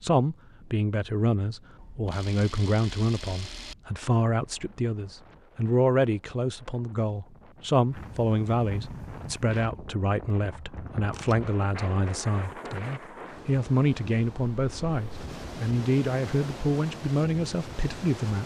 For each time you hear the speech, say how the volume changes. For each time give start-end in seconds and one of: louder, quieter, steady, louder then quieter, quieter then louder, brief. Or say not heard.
0.0-18.4 steady.